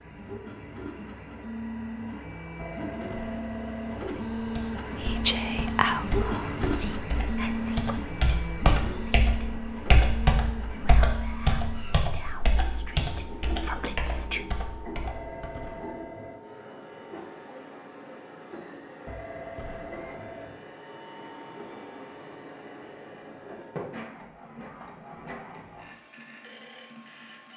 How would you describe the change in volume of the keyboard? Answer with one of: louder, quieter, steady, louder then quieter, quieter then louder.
louder then quieter.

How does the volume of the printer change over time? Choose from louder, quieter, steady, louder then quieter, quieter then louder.
quieter.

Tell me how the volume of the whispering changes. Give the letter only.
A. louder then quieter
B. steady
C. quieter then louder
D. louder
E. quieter
C.